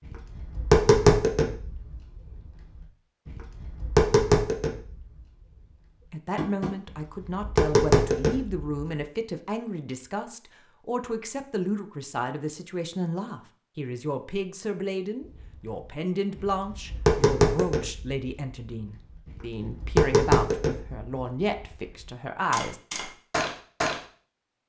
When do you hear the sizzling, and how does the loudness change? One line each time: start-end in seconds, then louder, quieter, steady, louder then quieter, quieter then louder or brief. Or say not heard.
not heard.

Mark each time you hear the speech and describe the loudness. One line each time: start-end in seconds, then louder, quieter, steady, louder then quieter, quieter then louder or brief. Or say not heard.
6.1-22.8 steady.